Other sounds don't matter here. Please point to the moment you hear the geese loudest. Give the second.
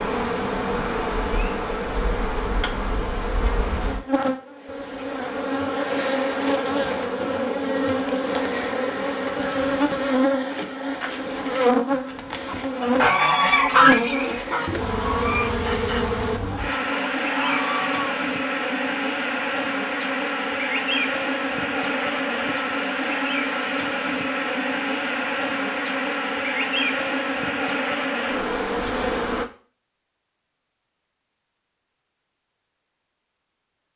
14 s.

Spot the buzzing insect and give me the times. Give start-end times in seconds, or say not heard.
0.0-29.4.